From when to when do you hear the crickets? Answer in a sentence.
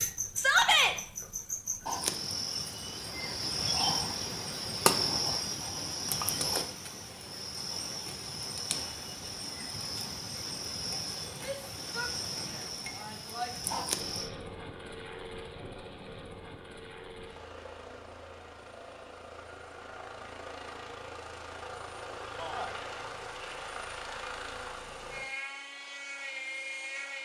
The crickets can be heard from 0.0 to 14.3 s.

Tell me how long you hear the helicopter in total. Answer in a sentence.
You can hear the helicopter for 13 seconds altogether.